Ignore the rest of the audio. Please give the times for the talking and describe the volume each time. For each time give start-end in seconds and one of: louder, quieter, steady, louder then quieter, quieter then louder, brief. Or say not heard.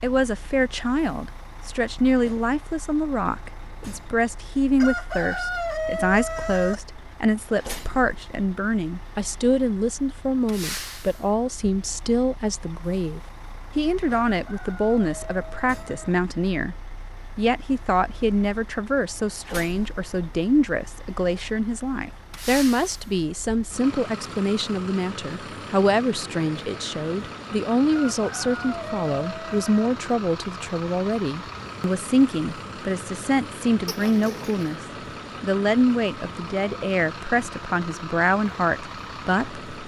0.0-34.8 steady
35.4-39.6 steady.